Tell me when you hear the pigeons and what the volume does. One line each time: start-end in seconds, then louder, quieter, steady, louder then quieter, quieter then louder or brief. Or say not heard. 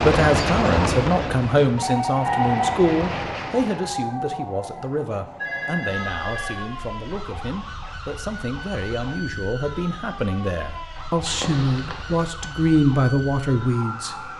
not heard.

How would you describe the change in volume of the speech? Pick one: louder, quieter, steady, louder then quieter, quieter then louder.
quieter then louder.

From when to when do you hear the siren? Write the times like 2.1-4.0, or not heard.
2.2-14.3.